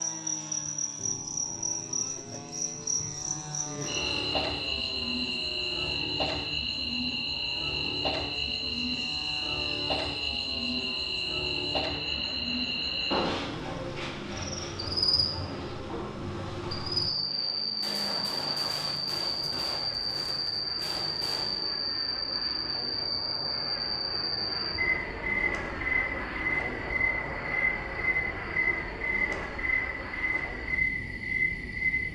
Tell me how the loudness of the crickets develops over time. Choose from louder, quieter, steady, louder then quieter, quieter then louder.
steady.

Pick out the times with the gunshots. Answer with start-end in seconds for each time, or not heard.
3.8-4.8, 17.8-21.6.